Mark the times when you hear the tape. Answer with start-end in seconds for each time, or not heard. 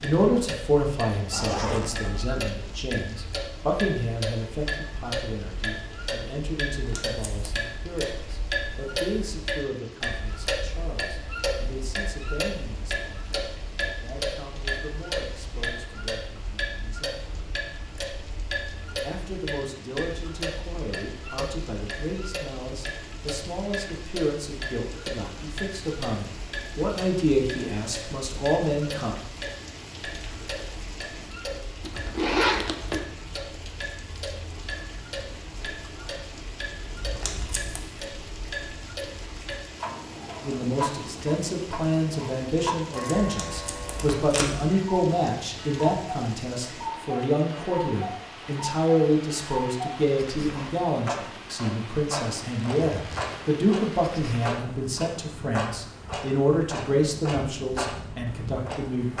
6.7-7.6, 37.0-37.8, 43.2-44.7.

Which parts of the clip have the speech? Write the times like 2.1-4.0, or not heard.
0.0-17.2, 19.0-29.1, 40.4-59.1.